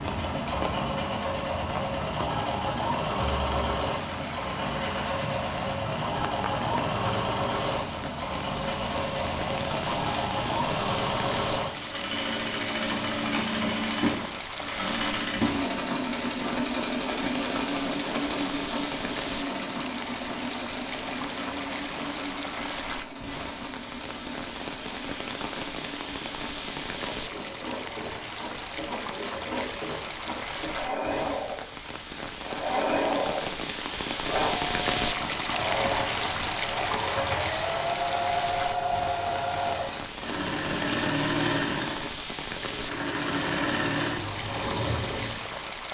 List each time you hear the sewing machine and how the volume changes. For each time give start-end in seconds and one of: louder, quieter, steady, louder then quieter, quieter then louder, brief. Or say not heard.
0.0-45.6 quieter then louder.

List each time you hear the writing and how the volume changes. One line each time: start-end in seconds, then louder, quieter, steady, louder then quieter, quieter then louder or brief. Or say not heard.
not heard.